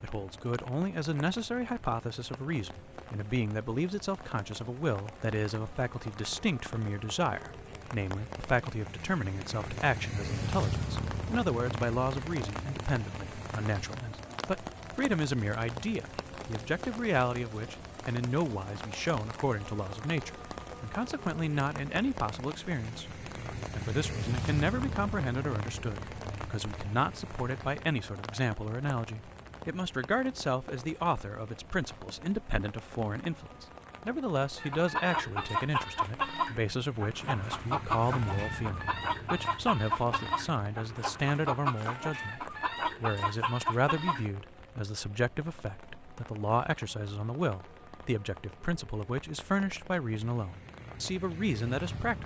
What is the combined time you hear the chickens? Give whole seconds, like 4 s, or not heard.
10 s.